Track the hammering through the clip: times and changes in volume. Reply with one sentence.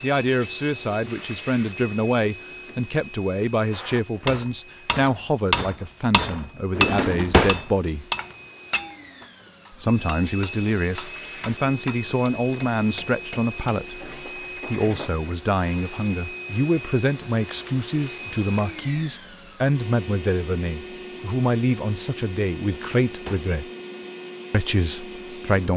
The hammering can be heard from 3.7 to 15.1 s, getting quieter.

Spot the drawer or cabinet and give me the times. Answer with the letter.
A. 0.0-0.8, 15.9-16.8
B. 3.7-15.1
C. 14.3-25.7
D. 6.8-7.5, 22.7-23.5
D.